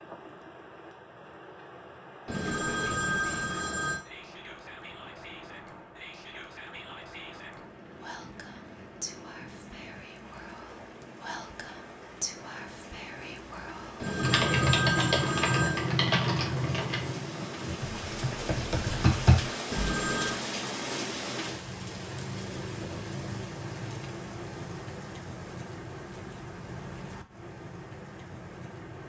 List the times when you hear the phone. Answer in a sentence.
The phone can be heard from 2.2 to 4.0 s, from 13.9 to 15.9 s and from 19.7 to 20.4 s.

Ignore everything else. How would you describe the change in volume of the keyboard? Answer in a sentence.
The volume of the keyboard goes down, then up.